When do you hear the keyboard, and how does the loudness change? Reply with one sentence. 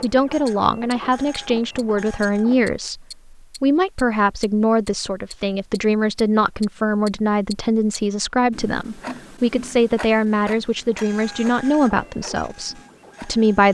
The keyboard can't be heard in this clip.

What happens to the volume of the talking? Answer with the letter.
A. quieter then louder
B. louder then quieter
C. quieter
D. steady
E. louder
D.